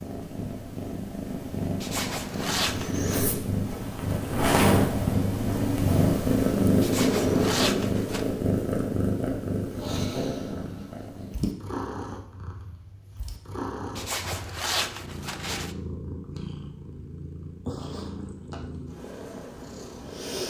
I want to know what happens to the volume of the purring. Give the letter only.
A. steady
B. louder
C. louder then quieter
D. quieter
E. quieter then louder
C.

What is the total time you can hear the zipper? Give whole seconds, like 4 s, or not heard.
5 s.